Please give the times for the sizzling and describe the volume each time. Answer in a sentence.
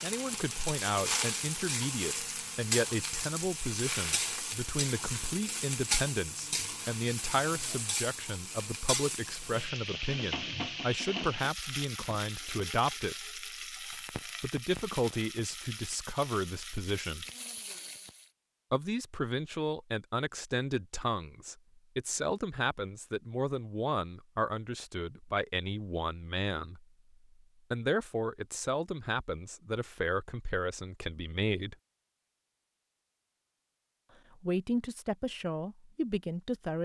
The sizzling can be heard from 0.0 to 18.3 s, getting quieter.